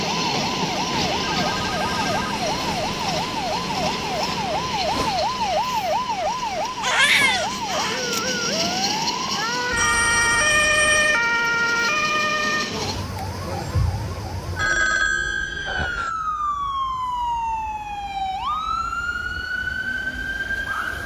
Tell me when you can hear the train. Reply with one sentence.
The train can be heard from 0.0 to 13.1 s.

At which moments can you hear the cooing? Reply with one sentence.
The cooing can't be heard in this clip.